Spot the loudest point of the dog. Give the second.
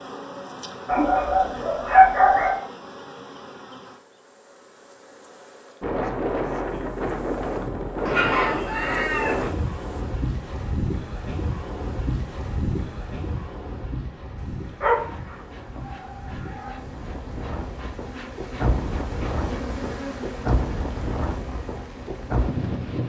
2 s.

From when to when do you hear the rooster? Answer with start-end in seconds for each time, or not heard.
8.1-9.4.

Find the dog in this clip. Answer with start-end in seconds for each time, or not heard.
0.8-2.6, 14.8-16.8.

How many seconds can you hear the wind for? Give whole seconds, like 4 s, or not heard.
17 s.